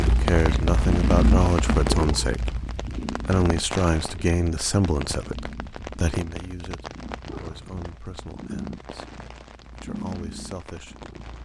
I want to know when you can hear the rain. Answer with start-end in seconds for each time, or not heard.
0.0-11.4.